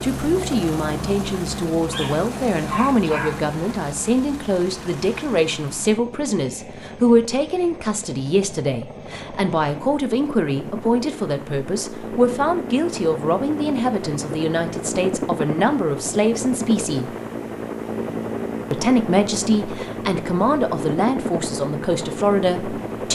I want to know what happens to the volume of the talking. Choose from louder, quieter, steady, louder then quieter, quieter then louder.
steady.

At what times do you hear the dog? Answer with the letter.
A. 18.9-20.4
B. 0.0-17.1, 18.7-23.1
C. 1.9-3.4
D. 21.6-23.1
C.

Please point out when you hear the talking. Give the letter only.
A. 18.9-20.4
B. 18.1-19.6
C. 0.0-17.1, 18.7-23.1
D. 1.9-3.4
C.